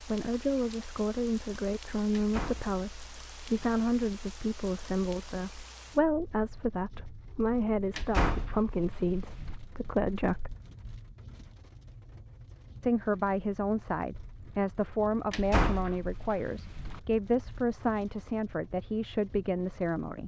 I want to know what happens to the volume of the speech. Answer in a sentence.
The volume of the speech stays about the same.